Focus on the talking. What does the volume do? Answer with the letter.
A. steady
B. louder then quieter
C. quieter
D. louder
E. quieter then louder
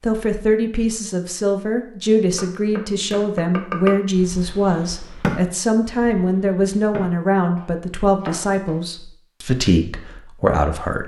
A.